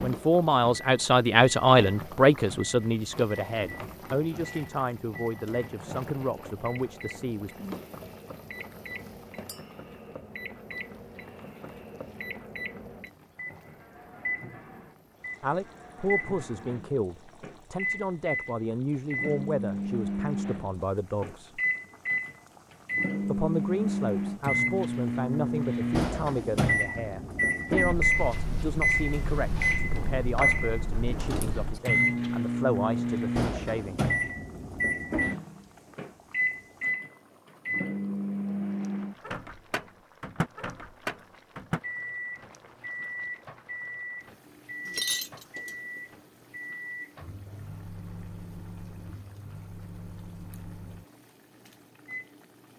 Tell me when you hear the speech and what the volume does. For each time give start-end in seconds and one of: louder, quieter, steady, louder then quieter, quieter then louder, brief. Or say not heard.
0.0-7.7 quieter
15.4-21.6 steady
23.2-34.0 steady.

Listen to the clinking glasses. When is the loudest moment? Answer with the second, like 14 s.
45 s.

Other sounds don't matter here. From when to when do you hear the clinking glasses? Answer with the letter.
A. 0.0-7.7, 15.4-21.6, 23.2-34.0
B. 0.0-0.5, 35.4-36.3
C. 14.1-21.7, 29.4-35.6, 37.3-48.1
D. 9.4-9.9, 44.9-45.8
D.